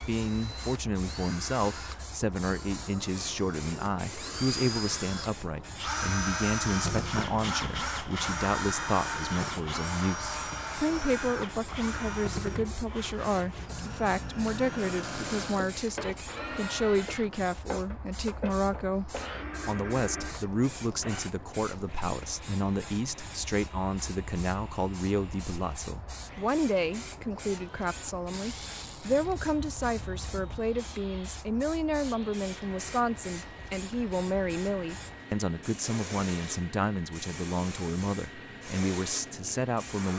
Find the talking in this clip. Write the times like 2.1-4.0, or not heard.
0.0-40.1.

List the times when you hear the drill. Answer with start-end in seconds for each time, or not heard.
0.0-40.1.